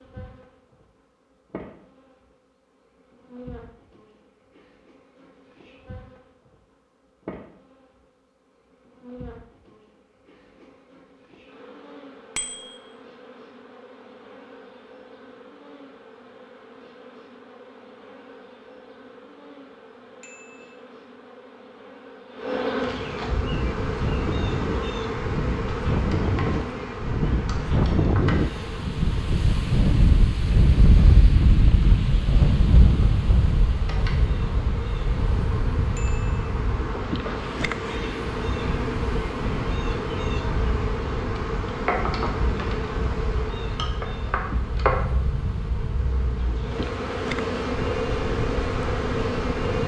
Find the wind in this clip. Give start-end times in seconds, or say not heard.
23.4-49.8.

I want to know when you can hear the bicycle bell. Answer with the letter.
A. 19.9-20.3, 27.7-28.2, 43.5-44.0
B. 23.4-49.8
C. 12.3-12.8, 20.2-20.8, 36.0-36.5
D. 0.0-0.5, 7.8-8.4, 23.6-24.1
C.